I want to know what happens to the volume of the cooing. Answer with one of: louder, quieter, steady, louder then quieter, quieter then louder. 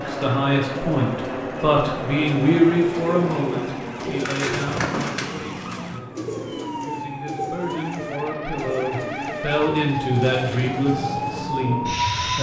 quieter.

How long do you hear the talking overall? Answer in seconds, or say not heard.
12 s.